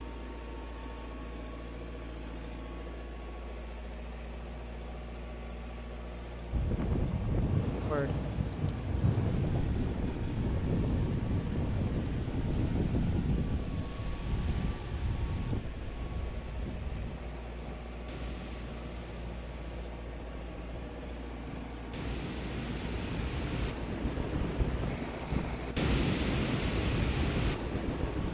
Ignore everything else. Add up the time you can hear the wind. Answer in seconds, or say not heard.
22 s.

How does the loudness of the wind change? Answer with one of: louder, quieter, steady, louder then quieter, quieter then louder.
quieter then louder.